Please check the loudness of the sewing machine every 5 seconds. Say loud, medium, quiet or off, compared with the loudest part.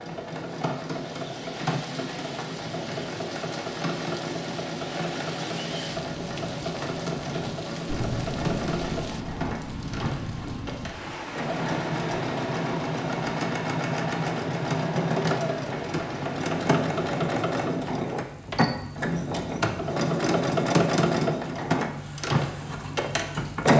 medium, medium, medium, loud, loud.